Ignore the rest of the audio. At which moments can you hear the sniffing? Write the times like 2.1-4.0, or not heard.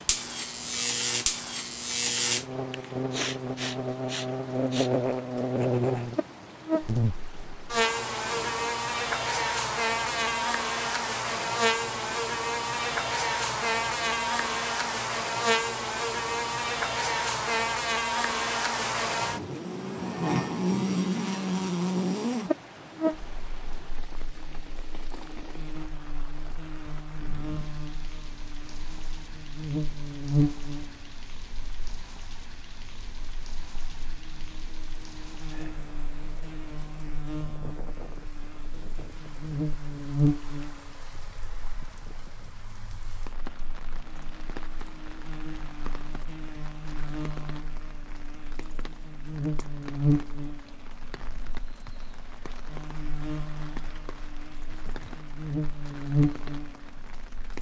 2.5-4.9.